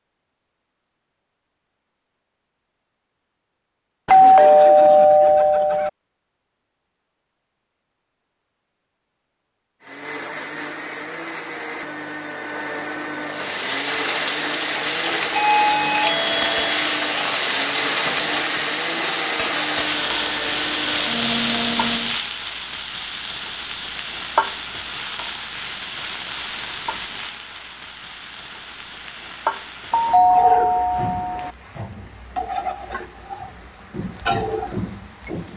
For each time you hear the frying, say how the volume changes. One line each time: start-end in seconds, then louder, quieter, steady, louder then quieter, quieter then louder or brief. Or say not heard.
13.2-35.5 quieter.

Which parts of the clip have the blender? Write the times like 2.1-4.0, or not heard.
9.8-22.2.